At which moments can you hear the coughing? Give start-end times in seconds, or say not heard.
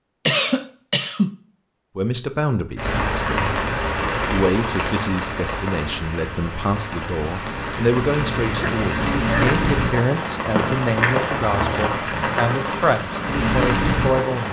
0.2-1.4, 8.6-9.6.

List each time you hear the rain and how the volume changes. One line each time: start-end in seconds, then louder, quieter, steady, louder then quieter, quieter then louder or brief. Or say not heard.
2.8-14.4 quieter then louder.